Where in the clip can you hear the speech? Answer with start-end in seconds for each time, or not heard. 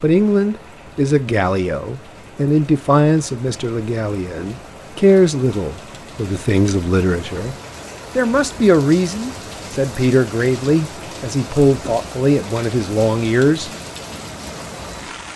0.0-7.5, 8.2-13.7.